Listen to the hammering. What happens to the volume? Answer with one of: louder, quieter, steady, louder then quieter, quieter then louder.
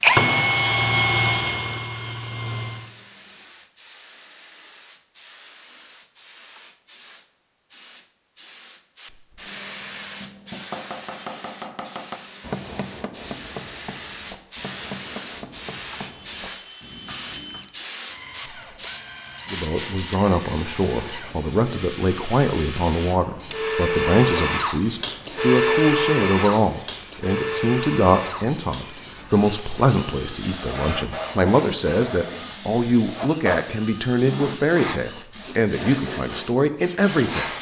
quieter.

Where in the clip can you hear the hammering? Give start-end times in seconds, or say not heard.
10.0-17.7.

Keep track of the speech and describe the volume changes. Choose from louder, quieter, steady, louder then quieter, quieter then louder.
steady.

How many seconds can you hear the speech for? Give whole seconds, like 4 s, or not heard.
18 s.